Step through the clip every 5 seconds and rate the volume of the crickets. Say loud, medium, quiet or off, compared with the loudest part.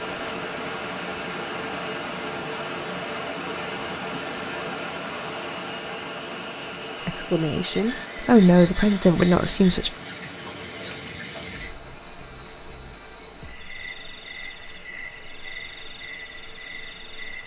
quiet, medium, loud, loud.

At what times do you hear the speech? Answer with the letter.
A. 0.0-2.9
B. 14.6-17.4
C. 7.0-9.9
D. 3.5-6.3
C.